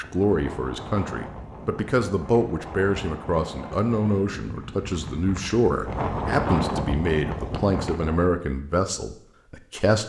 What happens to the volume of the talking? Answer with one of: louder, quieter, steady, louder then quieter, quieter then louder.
steady.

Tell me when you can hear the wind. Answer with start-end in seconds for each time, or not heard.
0.0-8.3.